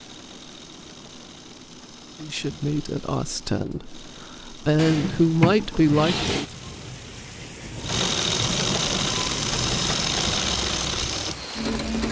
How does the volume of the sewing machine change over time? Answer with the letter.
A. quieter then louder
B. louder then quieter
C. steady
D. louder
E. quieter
D.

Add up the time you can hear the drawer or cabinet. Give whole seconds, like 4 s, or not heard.
2 s.